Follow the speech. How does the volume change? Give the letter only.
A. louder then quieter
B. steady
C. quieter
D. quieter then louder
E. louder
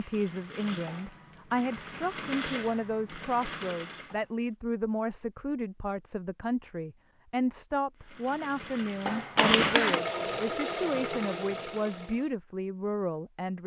B.